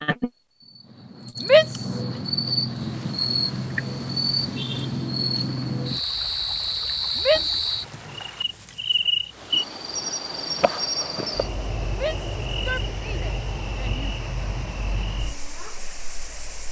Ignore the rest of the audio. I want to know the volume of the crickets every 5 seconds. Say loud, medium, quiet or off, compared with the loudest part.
loud, loud, medium, quiet.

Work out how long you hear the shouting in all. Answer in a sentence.
You can hear the shouting for 3 seconds altogether.